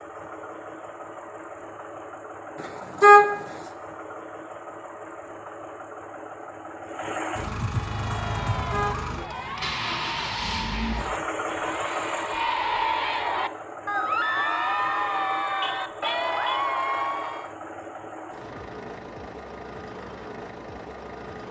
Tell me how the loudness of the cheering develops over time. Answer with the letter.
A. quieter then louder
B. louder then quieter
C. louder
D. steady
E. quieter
C.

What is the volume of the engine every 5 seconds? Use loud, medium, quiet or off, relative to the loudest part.
medium, loud, loud, medium, medium.